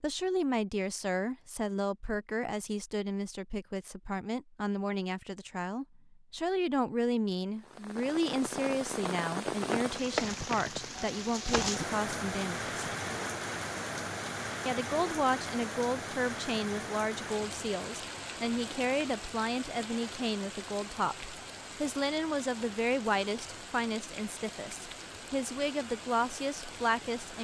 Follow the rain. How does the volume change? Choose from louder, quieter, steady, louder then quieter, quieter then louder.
quieter.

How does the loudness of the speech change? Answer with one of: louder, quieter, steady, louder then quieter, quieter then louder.
steady.